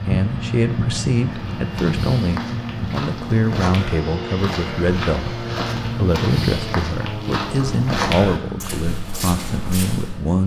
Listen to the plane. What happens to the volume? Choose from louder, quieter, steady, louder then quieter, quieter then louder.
quieter.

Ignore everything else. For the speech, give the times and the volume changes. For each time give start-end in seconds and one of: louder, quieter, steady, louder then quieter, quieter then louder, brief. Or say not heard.
0.1-10.4 steady.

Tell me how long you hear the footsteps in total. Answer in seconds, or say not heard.
9 s.